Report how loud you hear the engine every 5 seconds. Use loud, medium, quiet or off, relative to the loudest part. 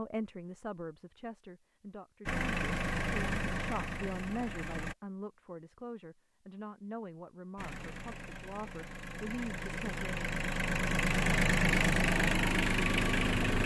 medium, quiet, loud.